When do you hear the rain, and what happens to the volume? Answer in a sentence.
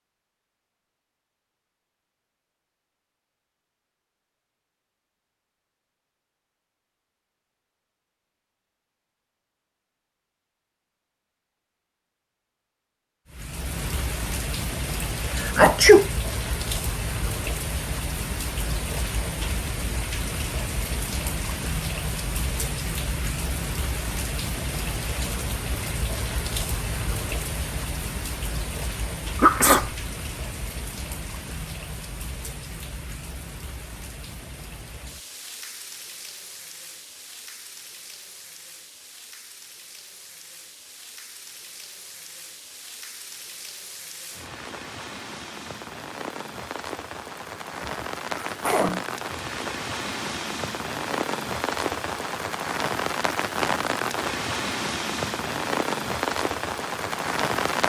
The rain can be heard from 13.3 to 57.8 s, getting quieter then louder.